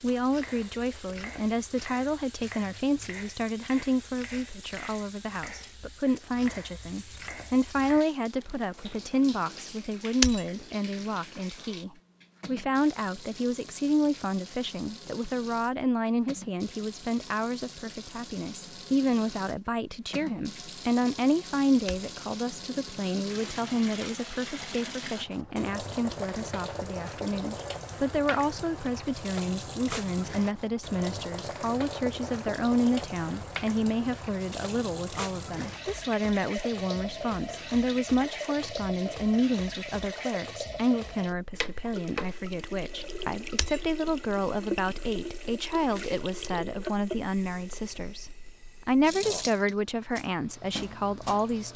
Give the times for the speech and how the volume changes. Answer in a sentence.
The speech can be heard from 0.0 to 51.7 s, at a steady volume.